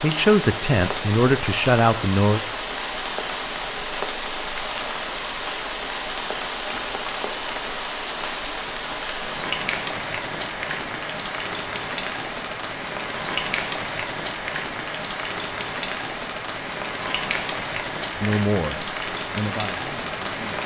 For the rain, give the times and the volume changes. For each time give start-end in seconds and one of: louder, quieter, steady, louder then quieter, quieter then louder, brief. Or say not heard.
0.0-20.6 steady.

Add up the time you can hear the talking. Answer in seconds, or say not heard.
5 s.